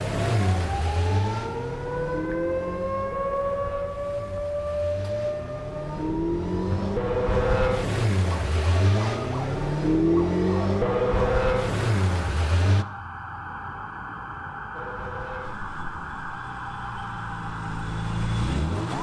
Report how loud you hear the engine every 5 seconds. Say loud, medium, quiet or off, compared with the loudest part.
medium, loud, loud, medium.